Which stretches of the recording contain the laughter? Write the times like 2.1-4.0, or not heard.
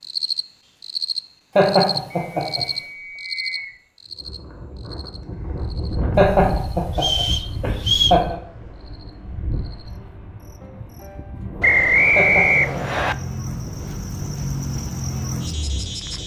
1.6-2.6, 6.2-8.3, 12.2-13.1.